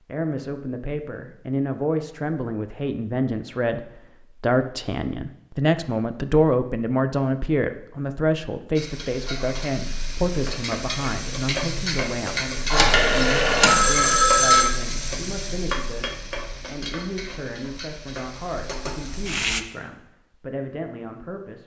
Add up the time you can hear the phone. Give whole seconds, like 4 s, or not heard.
2 s.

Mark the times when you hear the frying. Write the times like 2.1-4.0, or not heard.
8.8-19.6.